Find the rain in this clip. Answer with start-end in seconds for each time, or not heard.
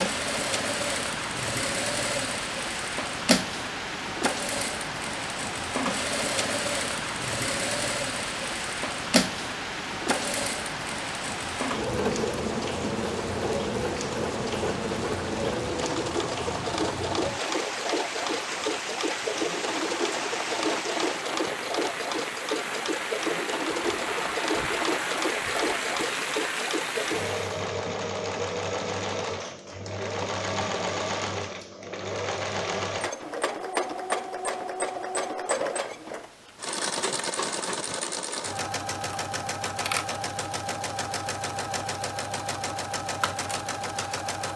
0.0-27.5.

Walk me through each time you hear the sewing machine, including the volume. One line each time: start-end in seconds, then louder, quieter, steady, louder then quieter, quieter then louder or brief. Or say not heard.
0.0-44.5 steady.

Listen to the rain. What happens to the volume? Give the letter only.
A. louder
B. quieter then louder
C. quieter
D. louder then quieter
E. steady
E.